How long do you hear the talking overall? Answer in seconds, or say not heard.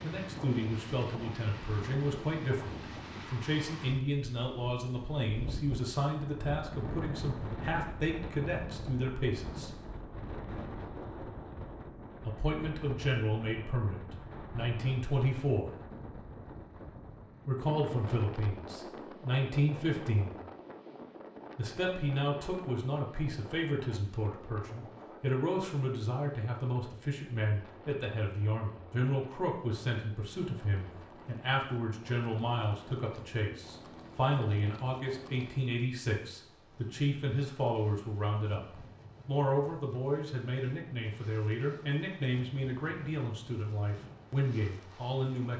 40 s.